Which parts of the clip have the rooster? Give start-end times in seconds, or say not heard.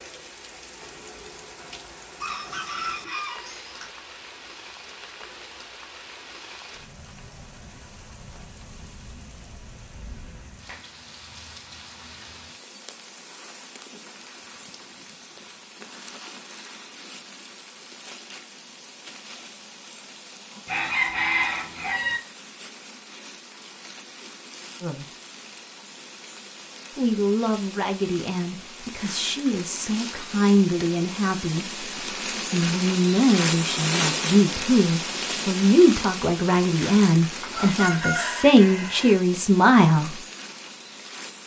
2.2-3.9, 20.6-22.2, 37.4-39.1.